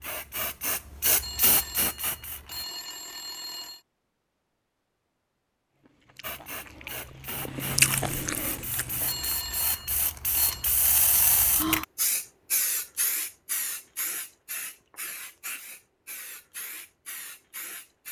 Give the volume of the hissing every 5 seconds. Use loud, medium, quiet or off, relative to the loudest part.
loud, medium, loud, medium.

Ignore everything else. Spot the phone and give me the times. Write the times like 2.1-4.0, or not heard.
1.2-3.9, 9.1-10.7.